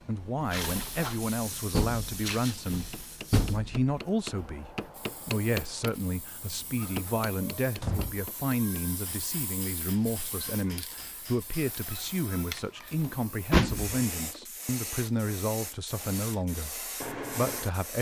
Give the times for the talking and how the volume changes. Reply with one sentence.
You can hear the talking from 0.1 to 17.9 s, at a steady volume.